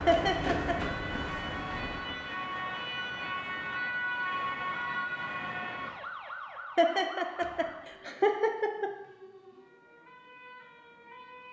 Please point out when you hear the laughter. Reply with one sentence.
You can hear the laughter from 0.1 to 0.9 s and from 6.8 to 8.9 s.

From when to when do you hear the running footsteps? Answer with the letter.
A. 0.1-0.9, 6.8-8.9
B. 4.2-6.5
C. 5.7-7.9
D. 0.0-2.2
D.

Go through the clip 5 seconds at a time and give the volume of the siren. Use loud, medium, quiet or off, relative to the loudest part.
loud, medium, quiet.